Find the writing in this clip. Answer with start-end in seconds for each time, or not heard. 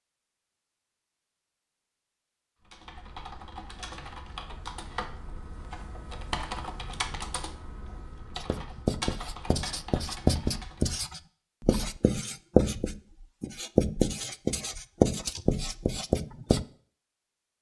8.3-16.6.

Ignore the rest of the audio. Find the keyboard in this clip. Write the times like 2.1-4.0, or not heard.
2.6-10.9.